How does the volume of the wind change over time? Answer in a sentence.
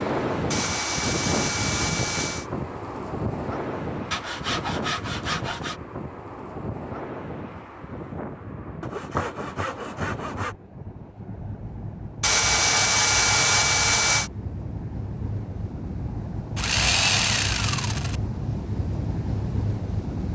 The loudness of the wind goes down, then up.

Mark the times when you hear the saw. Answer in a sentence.
You can hear the saw from 0.5 to 2.5 s, from 4.1 to 5.8 s, from 8.8 to 10.6 s, from 12.2 to 14.3 s and from 16.6 to 18.1 s.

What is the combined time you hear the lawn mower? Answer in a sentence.
The lawn mower can't be heard in this clip.